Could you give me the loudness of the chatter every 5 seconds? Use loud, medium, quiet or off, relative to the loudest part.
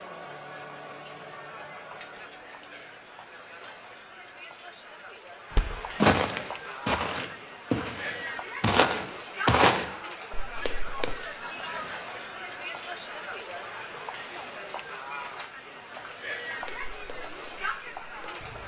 medium, loud, loud, loud.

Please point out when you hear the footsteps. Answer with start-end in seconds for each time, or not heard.
5.5-11.2, 16.6-18.6.